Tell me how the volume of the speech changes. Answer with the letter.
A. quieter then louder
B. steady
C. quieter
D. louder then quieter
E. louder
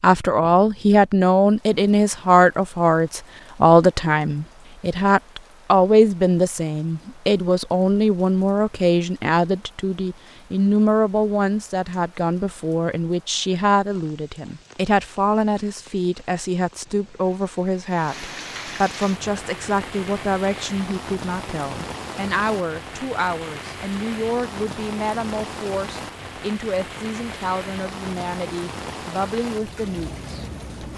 C.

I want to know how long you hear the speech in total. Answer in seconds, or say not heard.
31 s.